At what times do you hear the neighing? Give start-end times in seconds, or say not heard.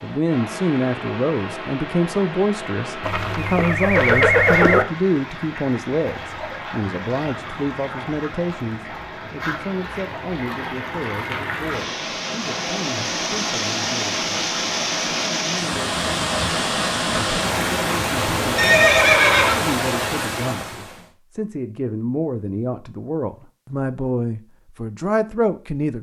3.0-4.8, 18.6-19.6.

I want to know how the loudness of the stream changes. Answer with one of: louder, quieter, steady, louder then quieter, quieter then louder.
louder.